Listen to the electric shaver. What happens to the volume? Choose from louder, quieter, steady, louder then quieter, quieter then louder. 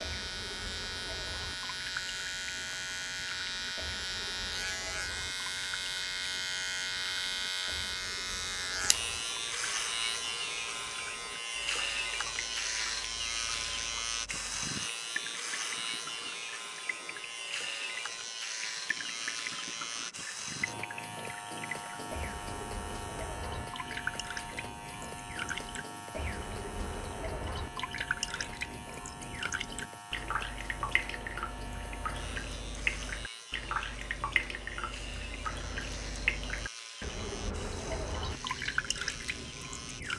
quieter.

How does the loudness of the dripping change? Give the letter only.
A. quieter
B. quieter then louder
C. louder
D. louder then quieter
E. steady
C.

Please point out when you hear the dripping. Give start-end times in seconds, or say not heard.
0.0-40.1.